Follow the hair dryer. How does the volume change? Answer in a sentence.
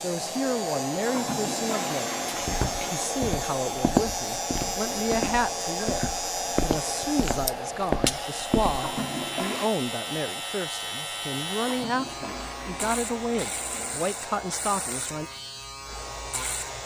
The loudness of the hair dryer goes down.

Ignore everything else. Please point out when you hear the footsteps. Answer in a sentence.
You can hear the footsteps from 2.4 to 8.8 s.